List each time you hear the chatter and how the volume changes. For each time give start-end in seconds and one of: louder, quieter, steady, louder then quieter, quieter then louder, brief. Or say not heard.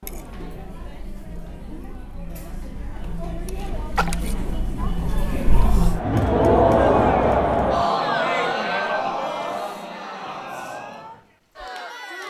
0.0-12.2 louder then quieter.